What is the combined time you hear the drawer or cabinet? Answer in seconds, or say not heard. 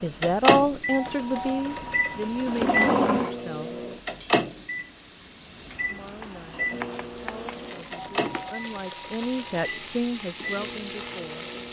2 s.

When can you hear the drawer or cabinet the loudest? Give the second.
3 s.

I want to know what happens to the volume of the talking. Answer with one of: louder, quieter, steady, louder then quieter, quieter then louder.
quieter then louder.